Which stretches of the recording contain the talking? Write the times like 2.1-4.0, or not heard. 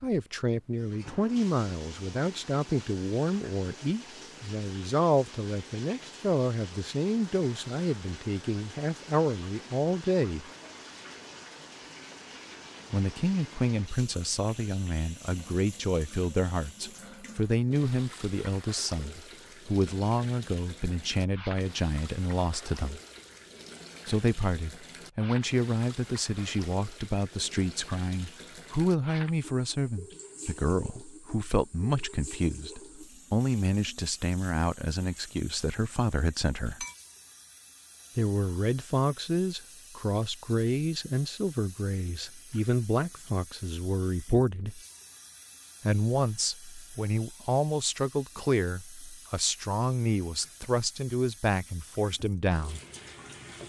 0.0-10.4, 12.9-23.0, 24.1-36.9, 38.1-44.8, 45.8-52.8.